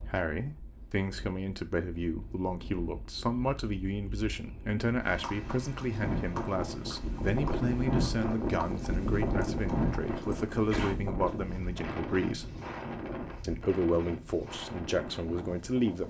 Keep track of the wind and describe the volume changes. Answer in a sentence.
The volume of the wind goes up, then down.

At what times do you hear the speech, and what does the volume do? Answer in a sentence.
The speech can be heard from 0.0 to 12.4 s, at a steady volume; and briefly from 13.4 to 16.0 s.